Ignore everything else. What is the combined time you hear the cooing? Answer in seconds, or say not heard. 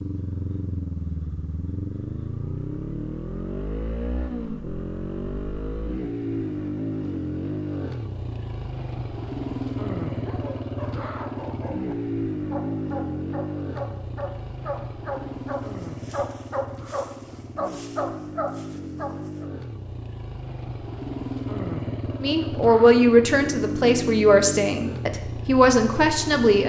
not heard.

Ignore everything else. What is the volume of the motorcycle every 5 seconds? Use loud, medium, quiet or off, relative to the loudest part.
loud, loud, loud, medium, loud, loud.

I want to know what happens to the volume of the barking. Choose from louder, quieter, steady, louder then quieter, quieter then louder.
louder.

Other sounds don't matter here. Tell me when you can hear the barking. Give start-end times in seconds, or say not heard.
10.1-19.4.